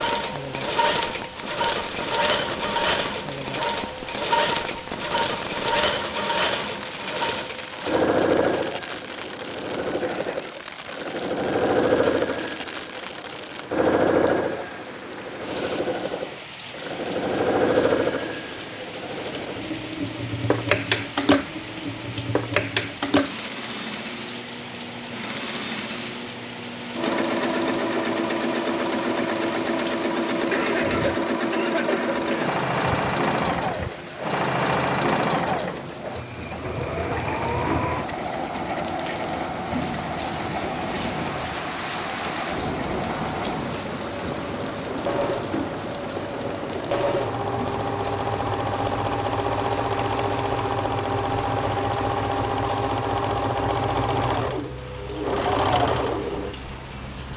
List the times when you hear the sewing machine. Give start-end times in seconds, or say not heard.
0.0-57.3.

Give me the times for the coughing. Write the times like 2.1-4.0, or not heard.
10.0-10.7, 30.5-32.5.